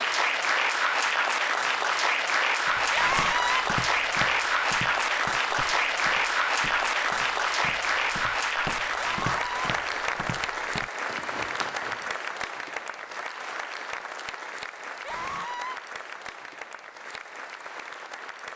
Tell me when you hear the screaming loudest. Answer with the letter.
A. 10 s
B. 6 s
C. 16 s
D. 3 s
D.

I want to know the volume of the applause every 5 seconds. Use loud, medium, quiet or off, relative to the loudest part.
loud, loud, medium, quiet.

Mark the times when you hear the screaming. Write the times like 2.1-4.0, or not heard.
2.9-3.6, 8.9-9.6, 15.0-15.8.